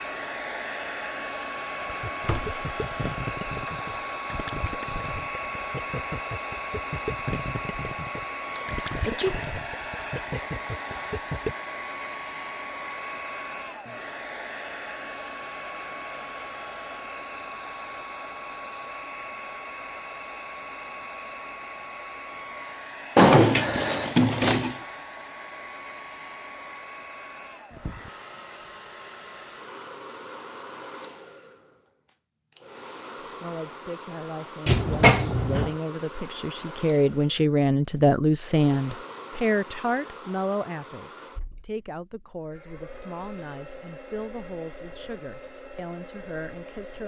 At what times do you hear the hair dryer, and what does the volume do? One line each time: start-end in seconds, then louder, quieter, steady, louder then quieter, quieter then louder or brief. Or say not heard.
0.0-47.0 quieter.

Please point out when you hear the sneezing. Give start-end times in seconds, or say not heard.
8.6-9.3.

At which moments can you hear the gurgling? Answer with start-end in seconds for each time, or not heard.
1.9-11.6.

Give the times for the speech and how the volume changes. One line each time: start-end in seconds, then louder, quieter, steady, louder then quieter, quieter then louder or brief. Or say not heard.
33.2-47.0 louder then quieter.